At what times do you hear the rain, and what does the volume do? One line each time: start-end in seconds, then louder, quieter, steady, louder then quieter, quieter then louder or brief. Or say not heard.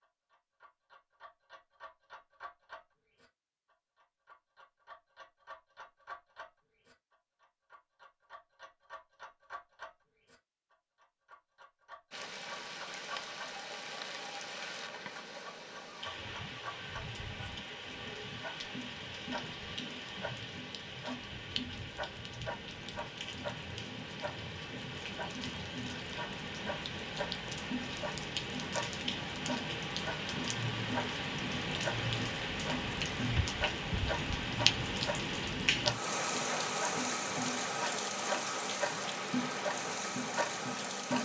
12.1-41.1 louder.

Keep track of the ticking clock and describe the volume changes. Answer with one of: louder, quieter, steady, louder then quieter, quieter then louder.
louder.